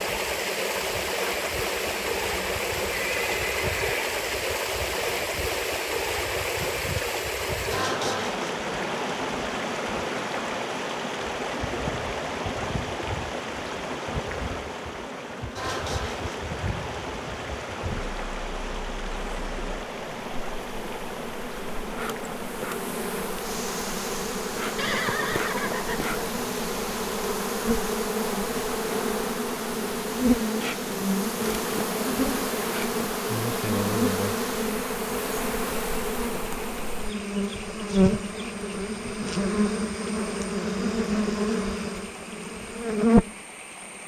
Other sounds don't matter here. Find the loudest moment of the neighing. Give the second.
25 s.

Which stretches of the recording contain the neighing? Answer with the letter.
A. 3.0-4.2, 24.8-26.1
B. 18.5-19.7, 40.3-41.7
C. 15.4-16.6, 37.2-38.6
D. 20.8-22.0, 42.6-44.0
A.